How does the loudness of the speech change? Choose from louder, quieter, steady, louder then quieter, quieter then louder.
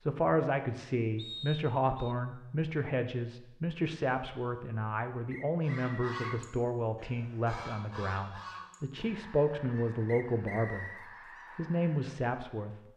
steady.